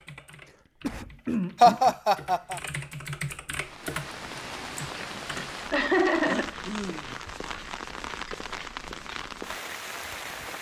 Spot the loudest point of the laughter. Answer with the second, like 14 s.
2 s.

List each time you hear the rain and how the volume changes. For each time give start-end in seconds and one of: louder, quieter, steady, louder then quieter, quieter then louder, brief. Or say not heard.
3.5-10.5 steady.